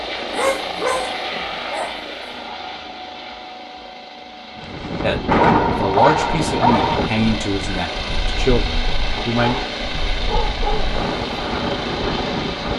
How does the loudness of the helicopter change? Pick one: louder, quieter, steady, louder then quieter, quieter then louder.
quieter then louder.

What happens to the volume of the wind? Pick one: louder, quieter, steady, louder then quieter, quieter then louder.
quieter then louder.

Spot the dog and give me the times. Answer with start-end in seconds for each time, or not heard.
0.2-2.0, 5.4-7.0, 9.2-11.2.